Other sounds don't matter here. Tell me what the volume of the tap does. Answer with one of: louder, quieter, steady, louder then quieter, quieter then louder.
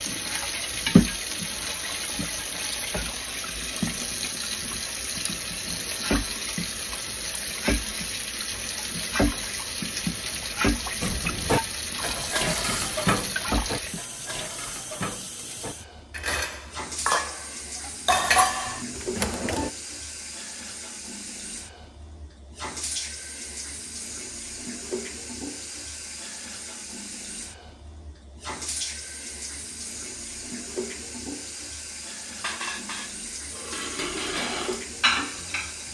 quieter.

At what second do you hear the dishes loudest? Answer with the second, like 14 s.
18 s.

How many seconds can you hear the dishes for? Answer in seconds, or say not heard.
12 s.